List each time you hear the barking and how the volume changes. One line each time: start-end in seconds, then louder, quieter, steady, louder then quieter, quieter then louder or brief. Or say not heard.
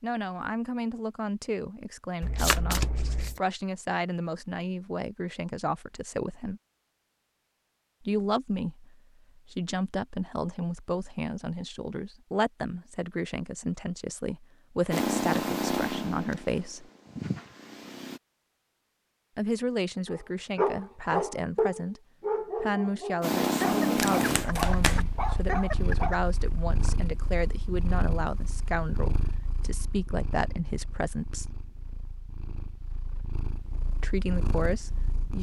20.1-26.2 quieter.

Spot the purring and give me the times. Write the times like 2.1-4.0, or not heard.
14.9-18.2, 23.2-35.3.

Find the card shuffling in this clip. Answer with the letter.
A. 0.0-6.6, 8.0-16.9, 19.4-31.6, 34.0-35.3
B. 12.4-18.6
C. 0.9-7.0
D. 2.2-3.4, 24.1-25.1
D.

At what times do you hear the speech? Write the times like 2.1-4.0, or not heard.
0.0-6.6, 8.0-16.9, 19.4-31.6, 34.0-35.3.